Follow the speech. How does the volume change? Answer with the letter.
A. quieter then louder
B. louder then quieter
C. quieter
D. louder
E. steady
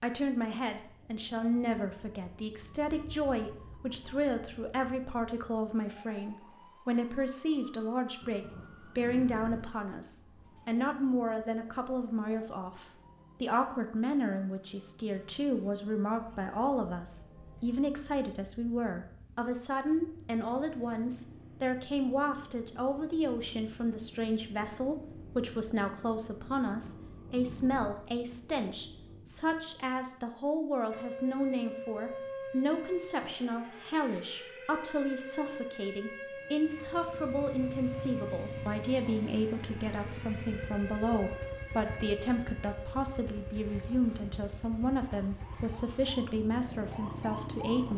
E.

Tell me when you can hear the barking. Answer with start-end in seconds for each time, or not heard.
not heard.